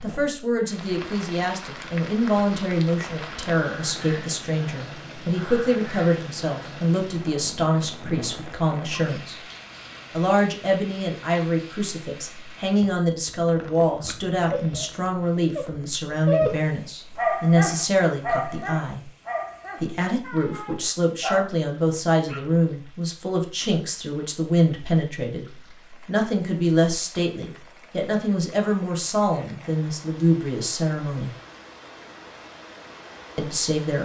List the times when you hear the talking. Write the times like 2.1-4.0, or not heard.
0.0-9.4, 10.1-19.1, 19.8-31.3, 33.4-34.0.